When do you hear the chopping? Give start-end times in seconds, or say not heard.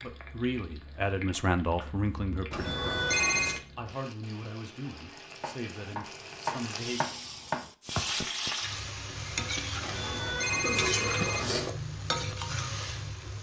5.4-8.1.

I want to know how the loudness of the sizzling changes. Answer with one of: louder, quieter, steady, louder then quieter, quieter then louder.
louder.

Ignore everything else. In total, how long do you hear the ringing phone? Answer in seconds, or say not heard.
3 s.